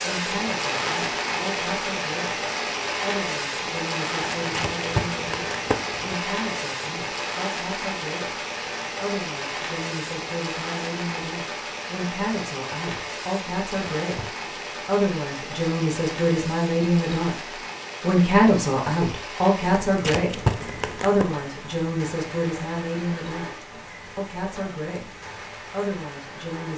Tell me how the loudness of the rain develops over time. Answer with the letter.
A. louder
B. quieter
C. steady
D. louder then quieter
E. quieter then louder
B.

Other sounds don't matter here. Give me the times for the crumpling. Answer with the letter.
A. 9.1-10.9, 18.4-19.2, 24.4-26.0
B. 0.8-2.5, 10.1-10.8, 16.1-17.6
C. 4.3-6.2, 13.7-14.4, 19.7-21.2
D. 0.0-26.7
C.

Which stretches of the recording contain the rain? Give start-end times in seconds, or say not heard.
0.0-26.7.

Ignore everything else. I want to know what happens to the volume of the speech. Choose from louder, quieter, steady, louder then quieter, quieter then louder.
louder then quieter.